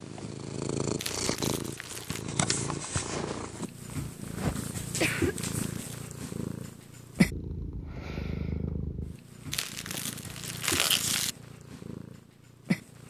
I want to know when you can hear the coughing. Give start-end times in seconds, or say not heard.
3.9-5.3.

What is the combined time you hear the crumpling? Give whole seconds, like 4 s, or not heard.
4 s.